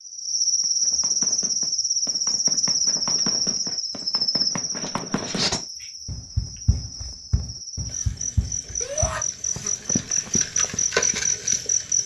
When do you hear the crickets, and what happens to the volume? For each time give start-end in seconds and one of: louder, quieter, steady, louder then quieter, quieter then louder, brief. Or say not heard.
0.0-12.0 quieter then louder.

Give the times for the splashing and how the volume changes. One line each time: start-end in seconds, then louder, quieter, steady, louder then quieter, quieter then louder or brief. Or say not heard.
not heard.